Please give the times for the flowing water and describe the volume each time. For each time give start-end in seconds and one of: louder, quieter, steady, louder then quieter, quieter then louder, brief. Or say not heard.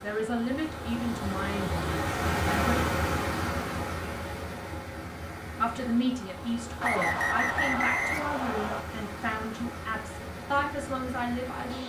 0.0-11.8 quieter.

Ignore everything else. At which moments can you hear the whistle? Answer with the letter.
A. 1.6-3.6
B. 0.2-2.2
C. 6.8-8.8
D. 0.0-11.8
C.